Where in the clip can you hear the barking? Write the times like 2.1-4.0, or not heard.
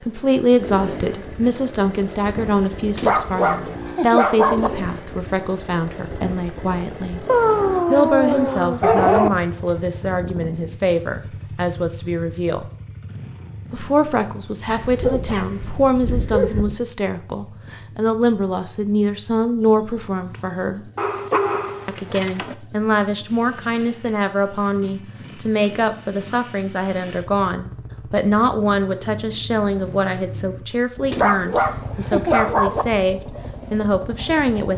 3.0-4.7, 7.2-9.3, 14.7-16.8, 20.9-22.6, 31.1-32.9.